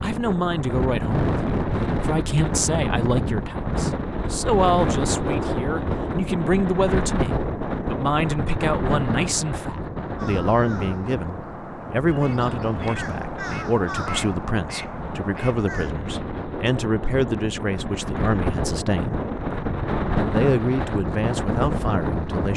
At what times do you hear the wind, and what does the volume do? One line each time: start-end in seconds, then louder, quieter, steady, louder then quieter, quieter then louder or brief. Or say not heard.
0.0-22.5 quieter then louder.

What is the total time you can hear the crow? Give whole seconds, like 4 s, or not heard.
6 s.